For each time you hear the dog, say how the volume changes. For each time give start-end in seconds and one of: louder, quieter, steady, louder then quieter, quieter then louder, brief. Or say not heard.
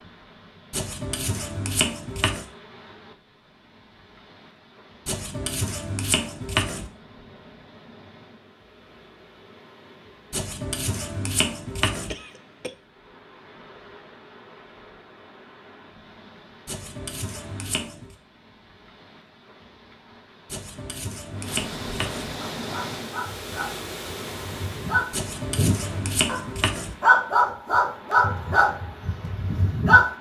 22.4-30.1 louder then quieter.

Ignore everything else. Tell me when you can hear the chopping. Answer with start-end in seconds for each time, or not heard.
0.7-2.5, 5.0-6.9, 10.3-12.2, 16.6-18.1, 20.5-22.3, 25.1-26.9.